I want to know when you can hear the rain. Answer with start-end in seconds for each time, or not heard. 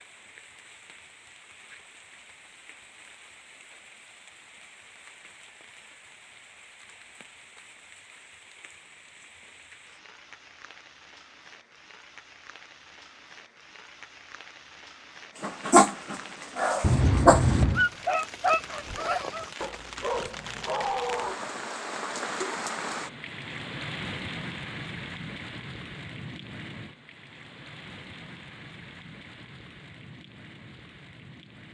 0.0-31.6.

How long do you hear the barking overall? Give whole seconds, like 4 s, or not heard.
6 s.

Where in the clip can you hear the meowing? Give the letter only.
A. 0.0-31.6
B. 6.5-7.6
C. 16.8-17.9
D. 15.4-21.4
C.